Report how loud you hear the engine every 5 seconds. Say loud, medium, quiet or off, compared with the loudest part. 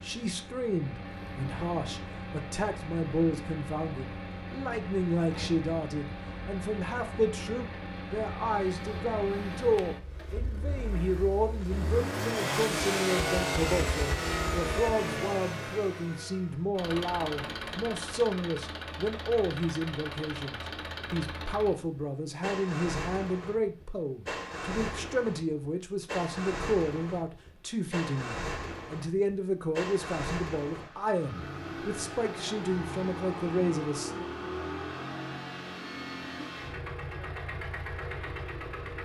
medium, medium, loud, medium, medium, medium, medium, medium.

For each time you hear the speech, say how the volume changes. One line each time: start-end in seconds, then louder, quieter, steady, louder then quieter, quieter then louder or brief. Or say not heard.
0.0-34.2 steady.